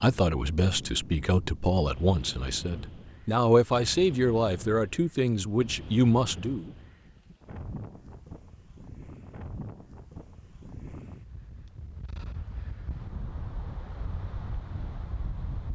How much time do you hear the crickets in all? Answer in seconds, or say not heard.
not heard.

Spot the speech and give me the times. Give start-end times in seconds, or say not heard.
0.0-6.7.